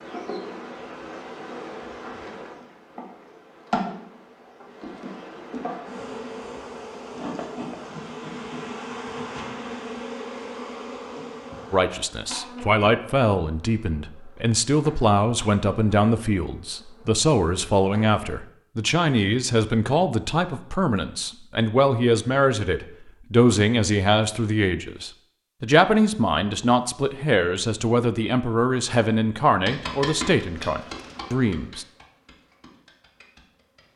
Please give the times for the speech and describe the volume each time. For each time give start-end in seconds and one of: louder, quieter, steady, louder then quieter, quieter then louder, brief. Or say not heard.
11.7-31.9 steady.